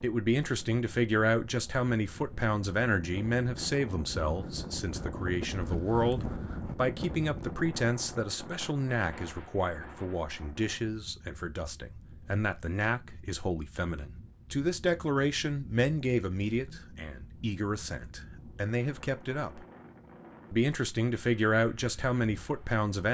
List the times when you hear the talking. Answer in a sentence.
You can hear the talking from 0.0 to 19.6 s and from 20.5 to 23.0 s.